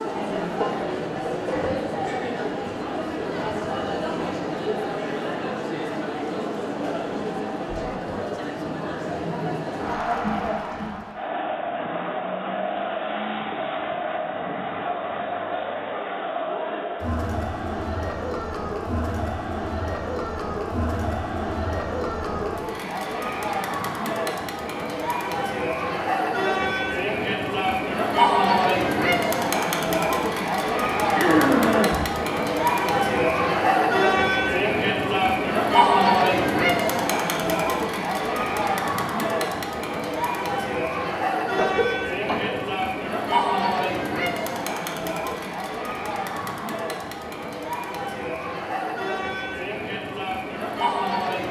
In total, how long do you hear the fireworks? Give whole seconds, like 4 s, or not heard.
not heard.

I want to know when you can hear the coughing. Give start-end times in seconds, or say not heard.
0.6-1.9, 31.1-32.0, 41.5-42.5.